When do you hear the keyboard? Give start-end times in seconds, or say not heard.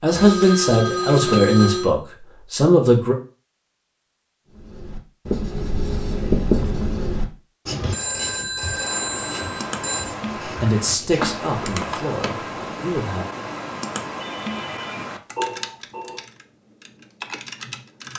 8.7-18.1.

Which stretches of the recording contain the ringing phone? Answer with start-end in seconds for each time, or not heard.
0.1-1.9, 7.9-10.1, 14.2-16.2.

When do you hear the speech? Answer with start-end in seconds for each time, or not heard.
0.0-3.1, 10.4-13.2.